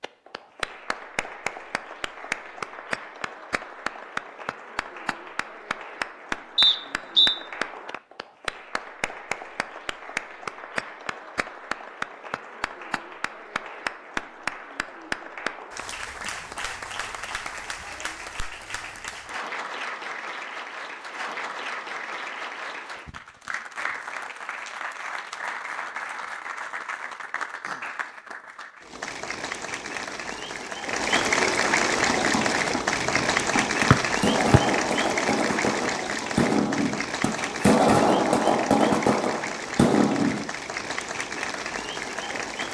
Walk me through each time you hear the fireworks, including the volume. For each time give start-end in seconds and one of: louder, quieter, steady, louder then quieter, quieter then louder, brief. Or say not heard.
31.9-40.5 louder.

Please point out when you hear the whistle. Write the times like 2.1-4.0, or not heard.
6.5-7.3, 33.9-34.6.